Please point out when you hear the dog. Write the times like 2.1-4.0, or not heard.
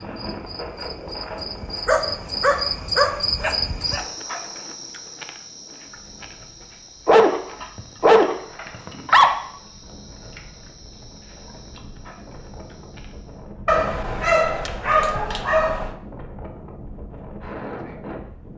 1.9-4.0, 7.0-9.3, 13.7-15.9.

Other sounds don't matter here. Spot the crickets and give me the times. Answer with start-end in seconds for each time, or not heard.
0.0-13.5.